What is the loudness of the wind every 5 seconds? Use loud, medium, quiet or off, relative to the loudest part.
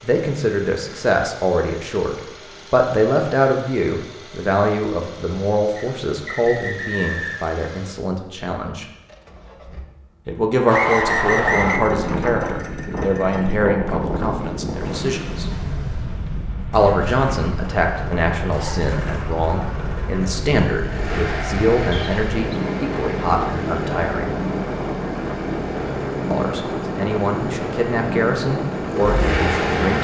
off, off, loud, medium, loud, loud.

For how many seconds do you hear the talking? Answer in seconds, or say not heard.
25 s.